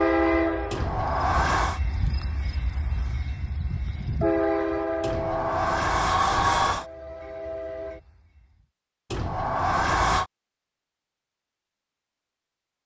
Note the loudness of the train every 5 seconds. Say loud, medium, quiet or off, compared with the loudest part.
loud, medium, off.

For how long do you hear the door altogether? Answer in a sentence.
The door can be heard for 4 seconds in total.